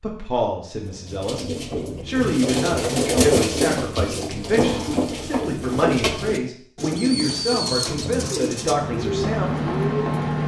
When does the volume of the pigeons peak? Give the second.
3 s.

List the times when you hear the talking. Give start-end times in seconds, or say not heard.
0.0-9.7.